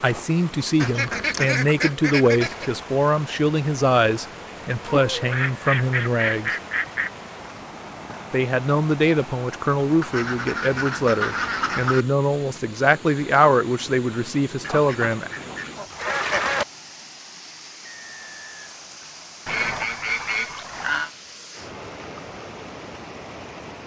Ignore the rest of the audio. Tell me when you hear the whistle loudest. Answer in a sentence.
The loudest moment of the whistle is at 18 seconds.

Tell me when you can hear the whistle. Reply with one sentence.
You can hear the whistle from 17.8 to 19.5 s.